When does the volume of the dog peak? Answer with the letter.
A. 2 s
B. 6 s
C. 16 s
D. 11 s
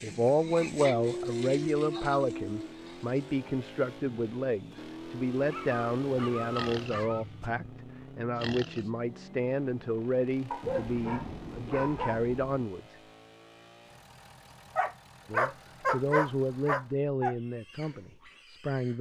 C.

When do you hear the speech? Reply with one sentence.
The speech can be heard from 0.0 to 12.9 s and from 15.3 to 18.9 s.